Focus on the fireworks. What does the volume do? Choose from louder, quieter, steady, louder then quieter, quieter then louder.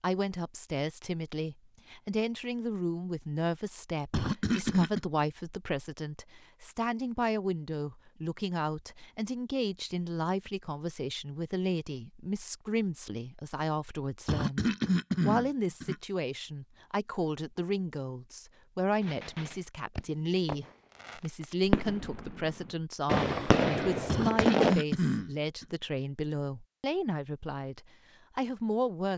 louder.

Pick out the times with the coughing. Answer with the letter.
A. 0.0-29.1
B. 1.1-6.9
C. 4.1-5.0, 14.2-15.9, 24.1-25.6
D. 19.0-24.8
C.